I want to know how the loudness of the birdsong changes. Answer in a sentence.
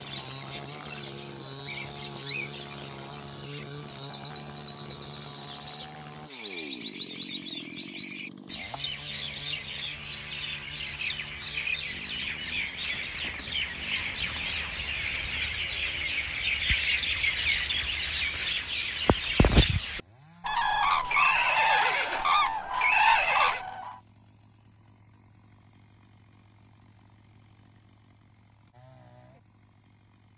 The loudness of the birdsong goes up.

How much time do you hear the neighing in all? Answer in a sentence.
You can hear the neighing for 3 seconds altogether.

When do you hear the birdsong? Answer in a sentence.
The birdsong can be heard from 0.0 to 24.0 s.